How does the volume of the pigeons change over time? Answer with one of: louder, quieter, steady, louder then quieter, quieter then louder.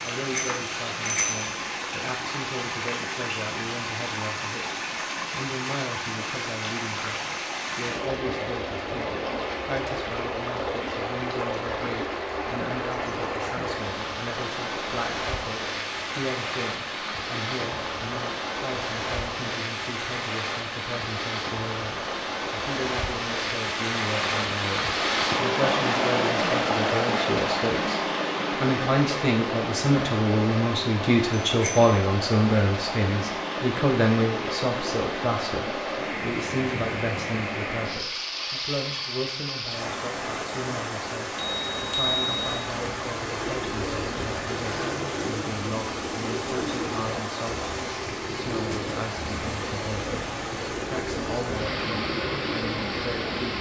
steady.